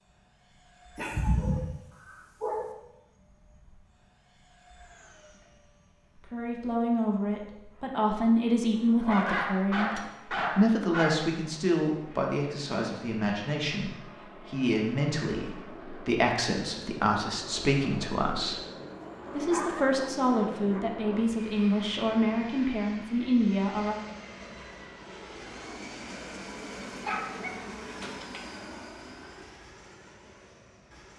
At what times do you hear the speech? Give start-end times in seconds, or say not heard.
6.2-9.9, 10.6-18.6, 19.3-23.9.